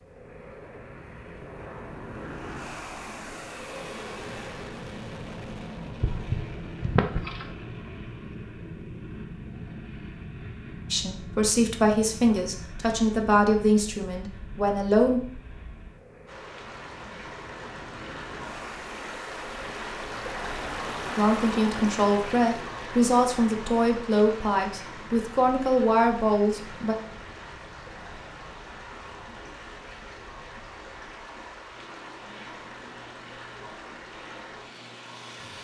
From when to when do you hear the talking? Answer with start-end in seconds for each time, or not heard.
10.9-15.2, 21.1-26.9.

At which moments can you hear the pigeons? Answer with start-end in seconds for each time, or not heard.
6.0-7.5.